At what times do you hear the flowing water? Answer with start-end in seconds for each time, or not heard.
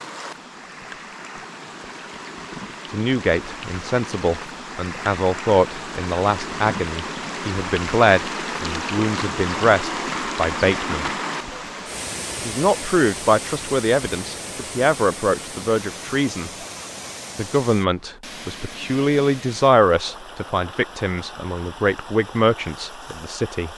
0.0-23.7.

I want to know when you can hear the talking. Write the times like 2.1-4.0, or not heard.
2.9-11.1, 12.3-16.5, 17.4-23.7.